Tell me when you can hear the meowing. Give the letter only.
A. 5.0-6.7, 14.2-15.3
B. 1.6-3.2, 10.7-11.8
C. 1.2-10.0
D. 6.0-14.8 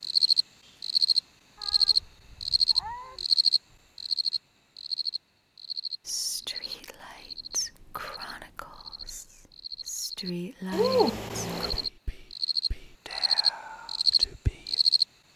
B.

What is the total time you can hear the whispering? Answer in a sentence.
You can hear the whispering for 9 seconds altogether.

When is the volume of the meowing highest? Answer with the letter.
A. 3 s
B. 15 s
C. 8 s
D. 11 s
D.